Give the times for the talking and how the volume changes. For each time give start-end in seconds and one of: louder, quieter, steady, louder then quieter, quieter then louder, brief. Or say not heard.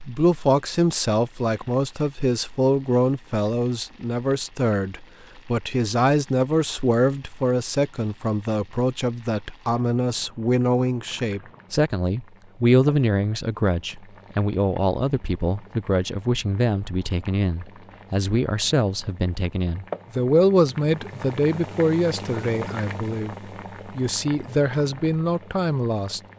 0.0-26.2 steady.